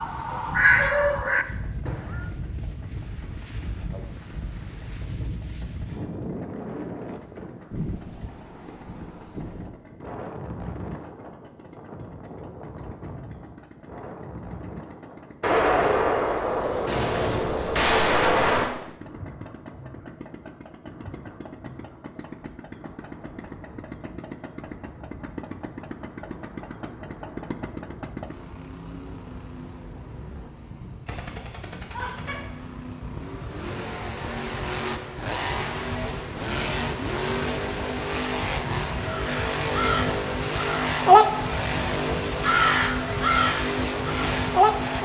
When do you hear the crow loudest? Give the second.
41 s.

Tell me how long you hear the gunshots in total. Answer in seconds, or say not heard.
5 s.